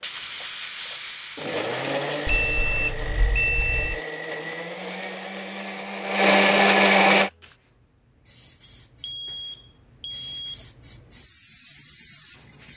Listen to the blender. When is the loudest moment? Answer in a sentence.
The loudest moment of the blender is at 7 seconds.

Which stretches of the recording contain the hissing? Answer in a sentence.
You can hear the hissing from 0.0 to 2.8 s and from 7.1 to 12.7 s.